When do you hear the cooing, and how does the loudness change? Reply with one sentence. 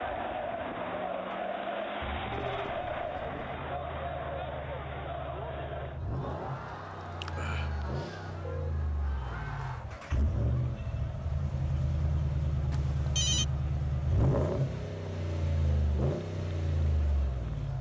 You can't hear the cooing here.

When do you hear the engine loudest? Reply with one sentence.
The volume of the engine peaks at 14 seconds.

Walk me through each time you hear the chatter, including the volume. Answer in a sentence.
The chatter can be heard from 0.0 to 17.7 s, getting quieter.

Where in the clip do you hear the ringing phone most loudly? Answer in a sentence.
The volume of the ringing phone peaks at 13 seconds.